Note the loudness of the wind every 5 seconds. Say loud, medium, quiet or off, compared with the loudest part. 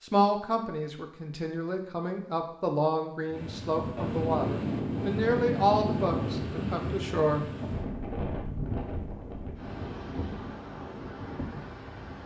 loud, loud, medium.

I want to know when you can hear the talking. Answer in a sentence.
The talking can be heard from 0.0 to 7.5 s.